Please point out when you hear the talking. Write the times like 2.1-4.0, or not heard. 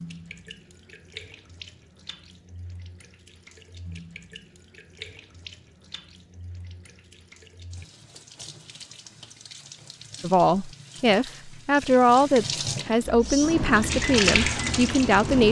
10.2-15.4.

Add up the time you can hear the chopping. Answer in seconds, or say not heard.
not heard.